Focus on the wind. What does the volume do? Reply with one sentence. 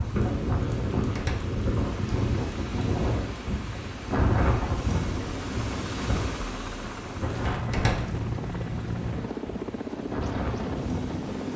The volume of the wind goes down.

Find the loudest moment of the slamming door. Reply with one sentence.
The loudest moment of the slamming door is at 8 seconds.